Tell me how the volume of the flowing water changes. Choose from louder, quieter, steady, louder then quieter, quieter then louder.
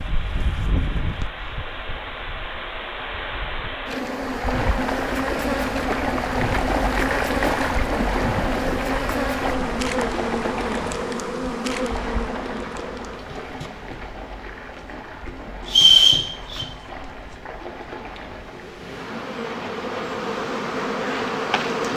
louder then quieter.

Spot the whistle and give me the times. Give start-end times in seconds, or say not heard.
15.7-16.6.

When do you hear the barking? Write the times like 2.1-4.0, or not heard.
not heard.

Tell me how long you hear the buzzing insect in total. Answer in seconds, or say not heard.
22 s.